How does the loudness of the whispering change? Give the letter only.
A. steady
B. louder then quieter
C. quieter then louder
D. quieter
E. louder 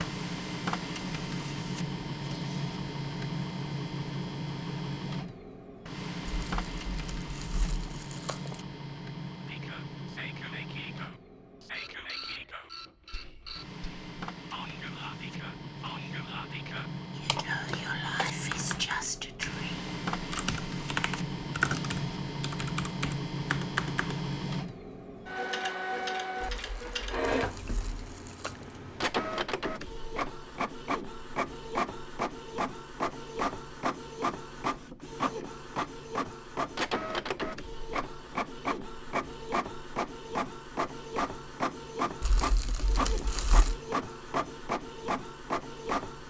E.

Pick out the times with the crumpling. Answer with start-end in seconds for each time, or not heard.
6.2-8.6, 26.4-28.7, 42.2-43.8.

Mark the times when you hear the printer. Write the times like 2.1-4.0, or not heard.
0.0-46.2.